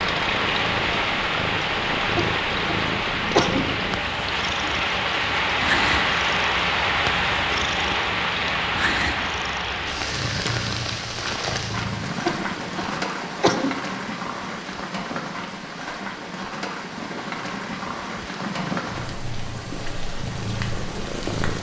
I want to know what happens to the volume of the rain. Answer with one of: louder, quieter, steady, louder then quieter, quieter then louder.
quieter.